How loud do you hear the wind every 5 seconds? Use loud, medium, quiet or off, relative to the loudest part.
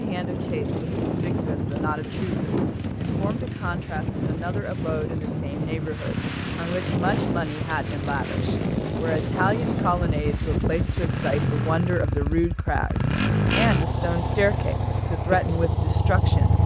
loud, loud, loud, off.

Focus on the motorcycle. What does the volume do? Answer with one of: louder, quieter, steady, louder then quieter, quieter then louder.
louder.